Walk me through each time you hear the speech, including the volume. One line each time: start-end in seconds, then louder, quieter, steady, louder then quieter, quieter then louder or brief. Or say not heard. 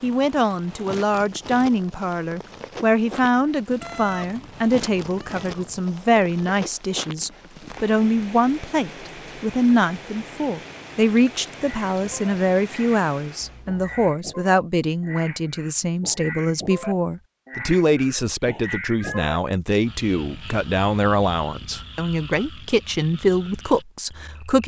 0.0-24.6 steady.